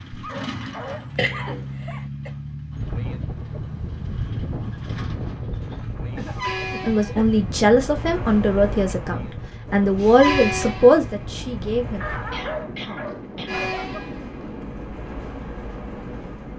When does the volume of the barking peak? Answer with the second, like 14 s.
12 s.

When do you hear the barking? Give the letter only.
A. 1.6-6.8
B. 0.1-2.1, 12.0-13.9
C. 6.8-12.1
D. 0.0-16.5
B.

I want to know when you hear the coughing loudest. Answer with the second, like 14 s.
1 s.